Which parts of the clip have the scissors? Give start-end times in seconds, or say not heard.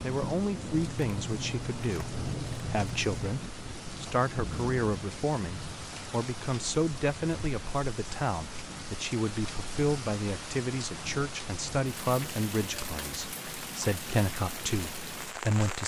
0.7-3.4.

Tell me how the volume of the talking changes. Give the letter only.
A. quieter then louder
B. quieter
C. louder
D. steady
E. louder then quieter
D.